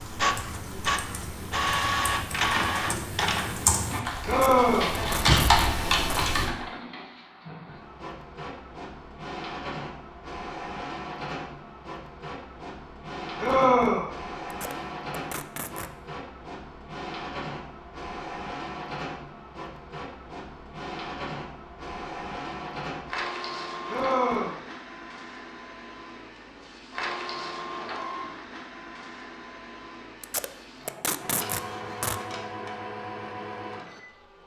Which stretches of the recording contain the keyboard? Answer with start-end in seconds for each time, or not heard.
0.0-6.5.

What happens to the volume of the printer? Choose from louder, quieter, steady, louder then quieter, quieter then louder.
quieter.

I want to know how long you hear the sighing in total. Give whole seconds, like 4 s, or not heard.
2 s.